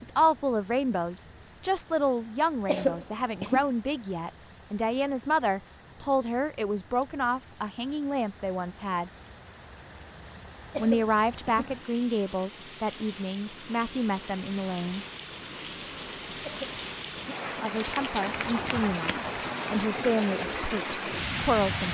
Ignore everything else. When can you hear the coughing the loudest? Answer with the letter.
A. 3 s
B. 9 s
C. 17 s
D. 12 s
A.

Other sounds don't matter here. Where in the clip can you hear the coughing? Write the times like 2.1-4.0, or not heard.
2.6-3.6, 10.7-11.7, 16.4-17.4.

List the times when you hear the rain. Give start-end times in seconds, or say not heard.
0.0-21.8.